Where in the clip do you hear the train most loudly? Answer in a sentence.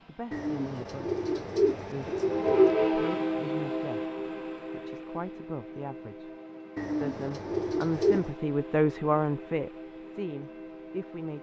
The loudest moment of the train is at 3 seconds.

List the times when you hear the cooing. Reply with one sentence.
The cooing can be heard from 0.3 to 2.8 s and from 6.8 to 8.3 s.